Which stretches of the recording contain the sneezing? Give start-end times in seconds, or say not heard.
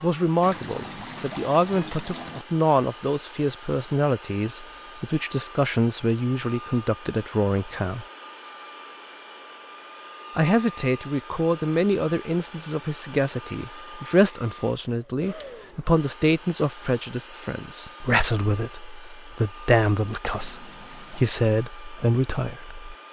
not heard.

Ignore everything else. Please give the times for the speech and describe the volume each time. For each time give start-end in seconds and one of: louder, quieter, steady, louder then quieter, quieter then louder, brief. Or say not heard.
0.0-8.1 steady
10.3-22.9 steady.